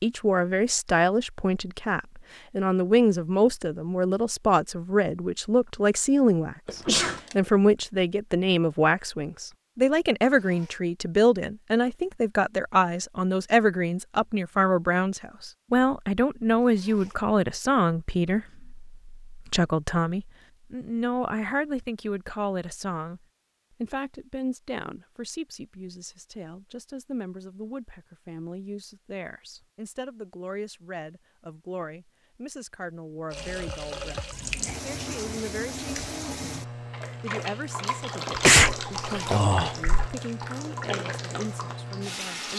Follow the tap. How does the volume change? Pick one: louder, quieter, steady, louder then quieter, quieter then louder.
steady.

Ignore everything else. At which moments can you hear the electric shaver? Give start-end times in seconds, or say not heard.
not heard.